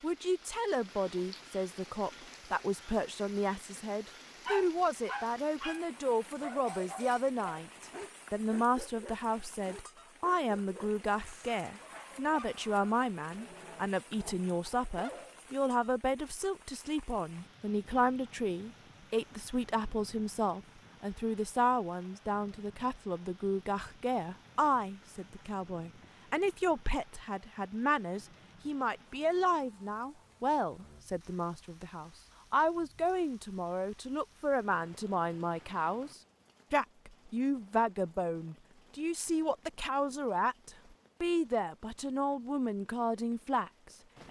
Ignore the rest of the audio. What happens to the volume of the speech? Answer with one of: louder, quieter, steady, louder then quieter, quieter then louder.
steady.